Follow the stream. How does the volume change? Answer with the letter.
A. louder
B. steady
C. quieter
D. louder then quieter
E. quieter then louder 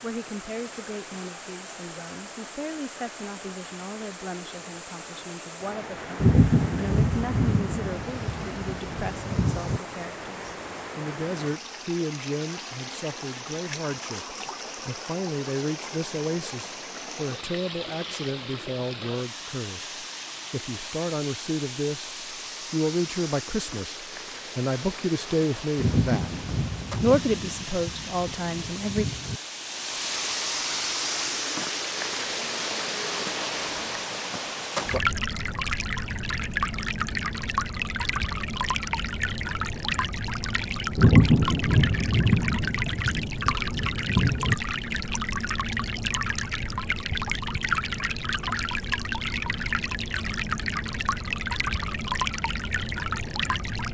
A.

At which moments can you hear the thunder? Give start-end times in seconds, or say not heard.
6.2-9.8, 25.8-29.4, 41.0-44.5.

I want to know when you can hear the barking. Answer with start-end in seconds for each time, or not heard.
not heard.